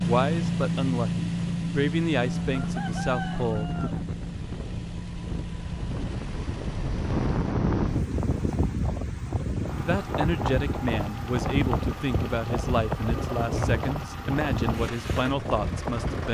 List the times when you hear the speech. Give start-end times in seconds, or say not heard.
0.0-4.0, 9.8-16.2.